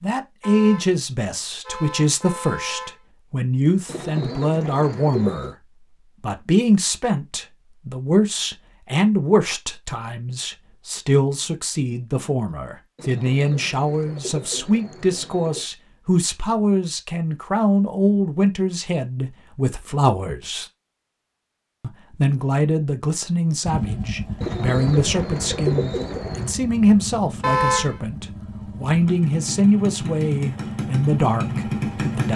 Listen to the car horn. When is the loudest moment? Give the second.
28 s.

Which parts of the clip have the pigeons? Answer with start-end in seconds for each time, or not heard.
3.9-5.5, 12.9-15.7, 24.4-26.6.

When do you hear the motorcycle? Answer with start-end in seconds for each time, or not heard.
23.6-32.3.